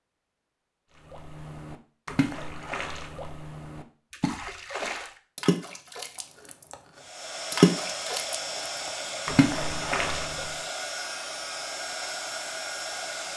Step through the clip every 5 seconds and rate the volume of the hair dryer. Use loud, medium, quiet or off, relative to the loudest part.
off, loud, loud.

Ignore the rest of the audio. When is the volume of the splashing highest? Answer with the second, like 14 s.
8 s.